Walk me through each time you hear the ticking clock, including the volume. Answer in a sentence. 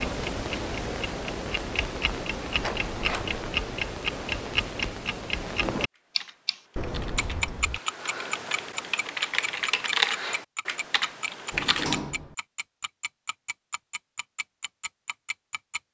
The ticking clock can be heard from 0.0 to 15.8 s, getting quieter.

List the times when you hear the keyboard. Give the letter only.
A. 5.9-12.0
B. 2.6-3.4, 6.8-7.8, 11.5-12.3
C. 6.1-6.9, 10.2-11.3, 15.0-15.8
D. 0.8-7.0
A.